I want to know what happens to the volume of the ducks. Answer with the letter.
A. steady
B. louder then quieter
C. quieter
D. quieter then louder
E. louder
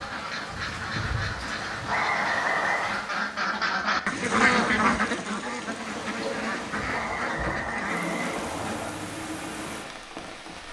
B.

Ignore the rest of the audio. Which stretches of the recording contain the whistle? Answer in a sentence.
The whistle can be heard from 1.9 to 2.9 s and from 6.9 to 8.9 s.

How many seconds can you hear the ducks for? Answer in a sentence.
You can hear the ducks for 9 seconds altogether.